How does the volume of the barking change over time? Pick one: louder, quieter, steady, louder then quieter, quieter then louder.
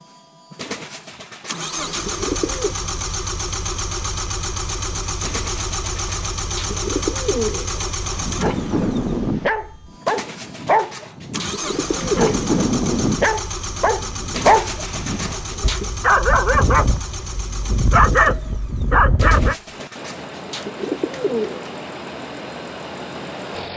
steady.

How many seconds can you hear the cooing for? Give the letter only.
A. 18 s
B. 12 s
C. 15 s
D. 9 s
B.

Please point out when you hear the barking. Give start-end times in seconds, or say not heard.
8.0-19.6.